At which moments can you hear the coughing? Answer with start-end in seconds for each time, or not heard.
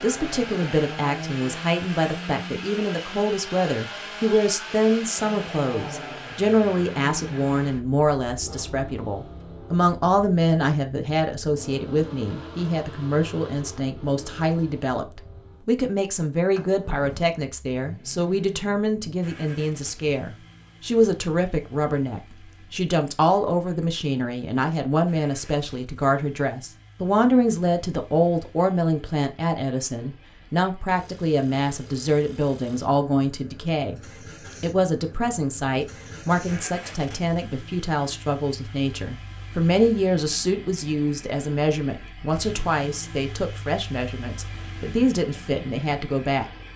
not heard.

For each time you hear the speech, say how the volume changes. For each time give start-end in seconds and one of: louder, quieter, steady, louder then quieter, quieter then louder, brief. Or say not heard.
0.0-46.5 steady.